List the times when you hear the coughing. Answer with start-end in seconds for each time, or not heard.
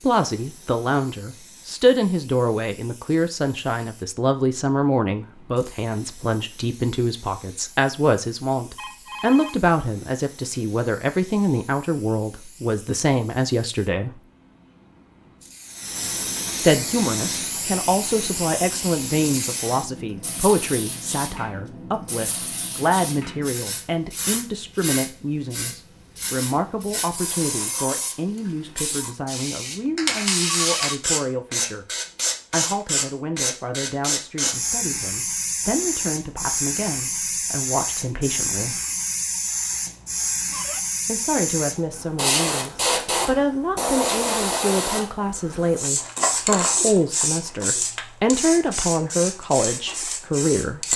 not heard.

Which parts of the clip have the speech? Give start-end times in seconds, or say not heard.
0.0-14.2, 16.6-31.9, 32.5-38.8, 41.0-50.9.